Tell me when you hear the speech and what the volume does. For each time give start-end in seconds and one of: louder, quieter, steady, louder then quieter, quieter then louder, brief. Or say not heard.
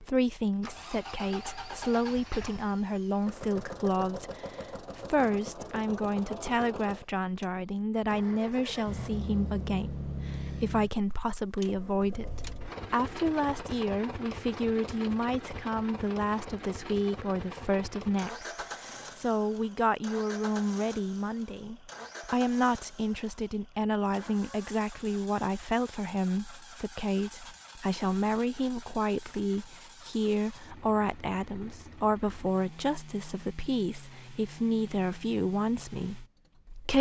0.0-36.9 steady.